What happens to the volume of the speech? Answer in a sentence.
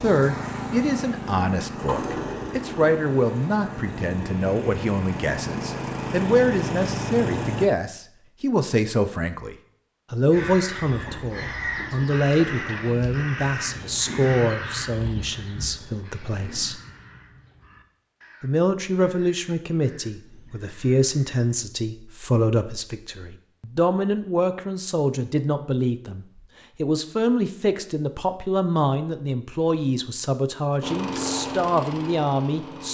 The volume of the speech stays about the same.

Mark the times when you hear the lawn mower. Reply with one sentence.
You can hear the lawn mower from 0.0 to 7.7 s and from 30.8 to 32.8 s.